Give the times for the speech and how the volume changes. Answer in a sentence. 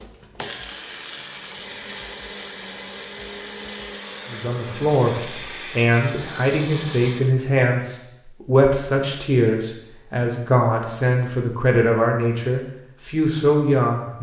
The speech can be heard from 4.3 to 14.1 s, at a steady volume.